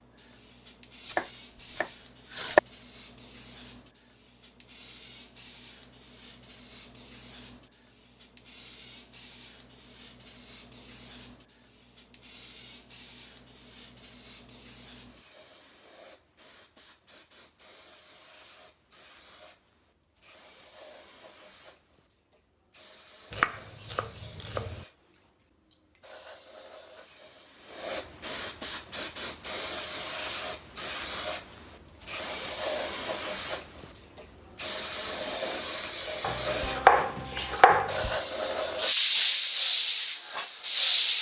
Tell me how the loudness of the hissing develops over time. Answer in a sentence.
The volume of the hissing goes up.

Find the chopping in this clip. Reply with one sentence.
You can hear the chopping from 1.1 to 2.6 s, from 23.3 to 24.9 s and from 36.2 to 38.2 s.